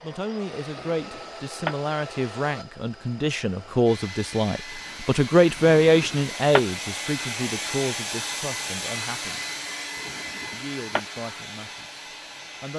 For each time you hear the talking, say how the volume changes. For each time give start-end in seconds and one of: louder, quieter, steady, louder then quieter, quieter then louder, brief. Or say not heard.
0.0-9.6 louder then quieter
10.5-12.7 brief.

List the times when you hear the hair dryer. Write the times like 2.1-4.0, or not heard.
0.0-12.7.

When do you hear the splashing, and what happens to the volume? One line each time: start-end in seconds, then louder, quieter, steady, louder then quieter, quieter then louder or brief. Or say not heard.
not heard.